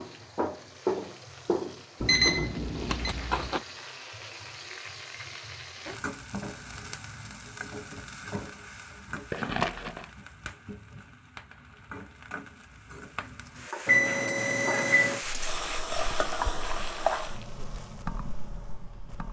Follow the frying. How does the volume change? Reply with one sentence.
The loudness of the frying goes down, then up.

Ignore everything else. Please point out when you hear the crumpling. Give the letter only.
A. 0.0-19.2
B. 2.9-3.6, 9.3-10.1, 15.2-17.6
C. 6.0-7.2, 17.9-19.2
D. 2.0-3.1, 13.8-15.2
B.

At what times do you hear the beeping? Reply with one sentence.
The beeping can be heard from 2.0 to 3.1 s and from 13.8 to 15.2 s.